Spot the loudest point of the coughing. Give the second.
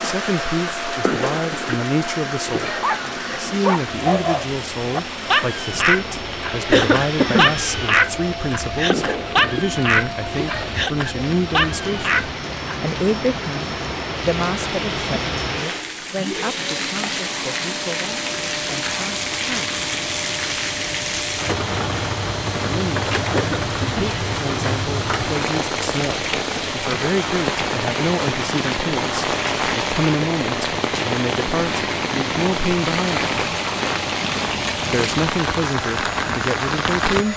7 s.